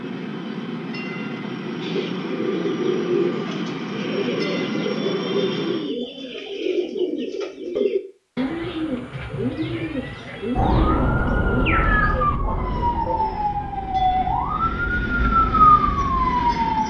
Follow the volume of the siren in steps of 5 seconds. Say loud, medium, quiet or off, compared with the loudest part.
off, off, medium, loud.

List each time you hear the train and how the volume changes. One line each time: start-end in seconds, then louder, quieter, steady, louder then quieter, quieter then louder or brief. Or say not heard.
0.0-6.0 steady
12.7-16.8 louder.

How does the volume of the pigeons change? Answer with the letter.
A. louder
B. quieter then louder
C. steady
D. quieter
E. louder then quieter
C.